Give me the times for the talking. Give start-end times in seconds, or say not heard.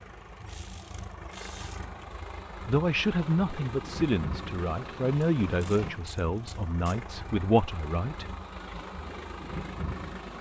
2.6-8.2.